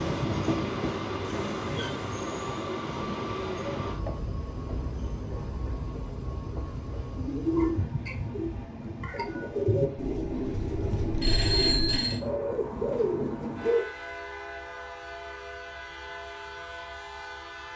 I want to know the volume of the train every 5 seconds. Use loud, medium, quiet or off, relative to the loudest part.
loud, medium, medium, medium.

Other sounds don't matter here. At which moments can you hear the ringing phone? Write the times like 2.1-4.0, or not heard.
10.5-12.2.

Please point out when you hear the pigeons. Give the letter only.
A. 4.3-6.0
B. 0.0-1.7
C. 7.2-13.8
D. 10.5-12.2
C.